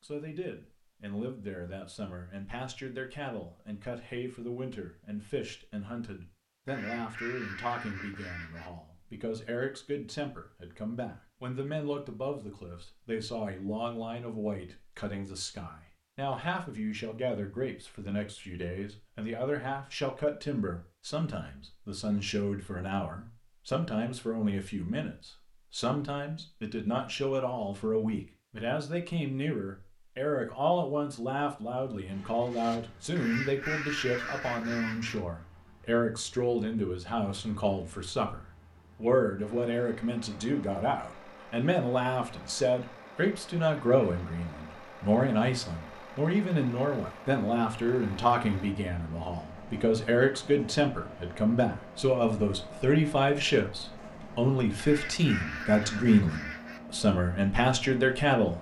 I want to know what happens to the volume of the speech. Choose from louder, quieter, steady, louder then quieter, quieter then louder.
louder.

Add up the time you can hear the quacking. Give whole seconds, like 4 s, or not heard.
6 s.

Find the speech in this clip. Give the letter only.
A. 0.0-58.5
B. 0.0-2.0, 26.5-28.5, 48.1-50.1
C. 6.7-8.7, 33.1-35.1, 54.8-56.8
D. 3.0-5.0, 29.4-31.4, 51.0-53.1
A.